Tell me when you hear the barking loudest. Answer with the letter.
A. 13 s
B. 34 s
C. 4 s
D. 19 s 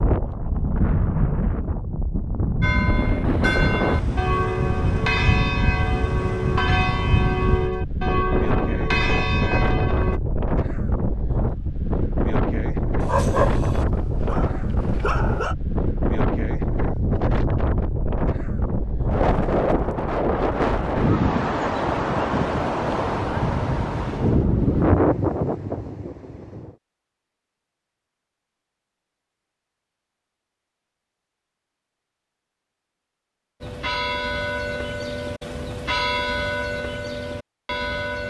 A.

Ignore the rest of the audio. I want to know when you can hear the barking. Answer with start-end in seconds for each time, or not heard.
13.0-15.6.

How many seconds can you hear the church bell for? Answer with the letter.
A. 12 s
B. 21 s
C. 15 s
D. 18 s
A.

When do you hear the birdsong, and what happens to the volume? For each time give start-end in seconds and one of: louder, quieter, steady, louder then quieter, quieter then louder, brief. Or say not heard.
not heard.